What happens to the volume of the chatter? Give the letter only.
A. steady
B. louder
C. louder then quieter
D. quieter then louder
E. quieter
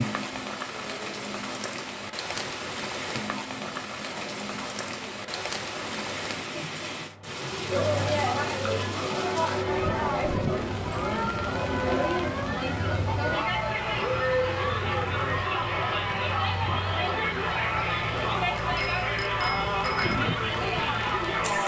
B.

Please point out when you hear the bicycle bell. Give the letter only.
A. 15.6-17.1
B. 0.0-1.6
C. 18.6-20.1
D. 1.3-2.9
C.